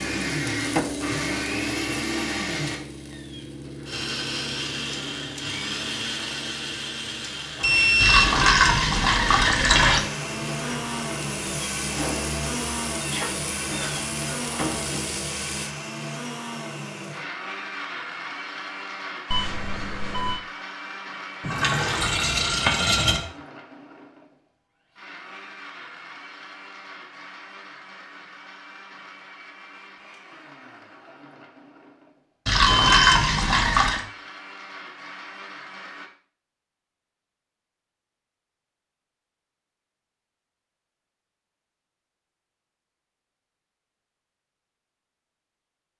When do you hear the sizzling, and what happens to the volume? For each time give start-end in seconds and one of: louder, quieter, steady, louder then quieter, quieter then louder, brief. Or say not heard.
0.0-15.8 quieter then louder.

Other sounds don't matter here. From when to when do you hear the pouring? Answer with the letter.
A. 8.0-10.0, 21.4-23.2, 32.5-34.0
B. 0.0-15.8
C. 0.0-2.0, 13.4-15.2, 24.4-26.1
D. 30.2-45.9
A.